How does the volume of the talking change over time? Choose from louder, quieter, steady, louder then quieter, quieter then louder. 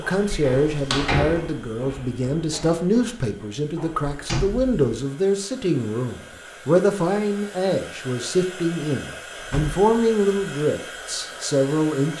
steady.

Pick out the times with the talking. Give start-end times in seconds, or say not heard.
0.0-12.1.